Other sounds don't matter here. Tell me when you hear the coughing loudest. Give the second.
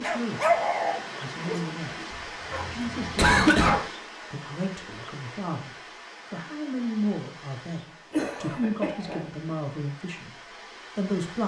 3 s.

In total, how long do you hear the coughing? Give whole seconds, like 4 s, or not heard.
3 s.